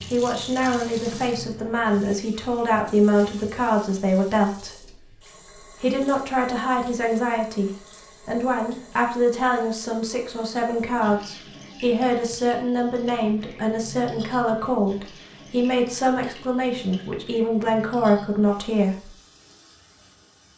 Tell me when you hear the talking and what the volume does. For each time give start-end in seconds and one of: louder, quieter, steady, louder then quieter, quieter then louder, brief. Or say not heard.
0.0-19.1 steady.